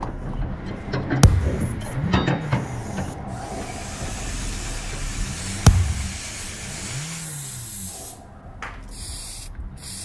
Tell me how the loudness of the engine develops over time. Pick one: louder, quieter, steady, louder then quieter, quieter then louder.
quieter.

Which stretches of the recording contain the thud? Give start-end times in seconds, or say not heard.
1.2-1.6, 5.7-6.2.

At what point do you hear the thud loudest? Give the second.
6 s.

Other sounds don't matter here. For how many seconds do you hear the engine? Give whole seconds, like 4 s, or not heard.
10 s.